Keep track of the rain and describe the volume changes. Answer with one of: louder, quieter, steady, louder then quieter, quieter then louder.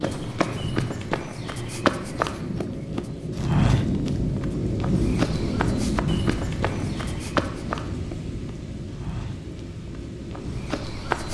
louder then quieter.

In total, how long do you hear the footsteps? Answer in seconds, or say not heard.
11 s.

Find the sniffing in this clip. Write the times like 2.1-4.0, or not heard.
not heard.